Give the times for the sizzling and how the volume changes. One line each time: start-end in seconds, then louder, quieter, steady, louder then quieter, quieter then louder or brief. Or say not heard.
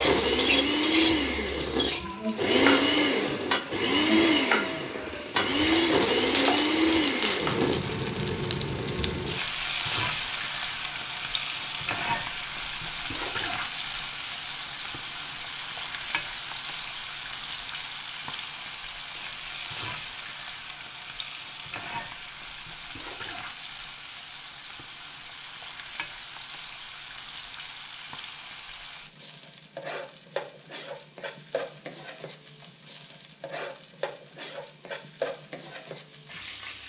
0.0-36.8 quieter.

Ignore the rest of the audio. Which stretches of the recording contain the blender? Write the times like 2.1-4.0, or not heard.
0.0-7.8.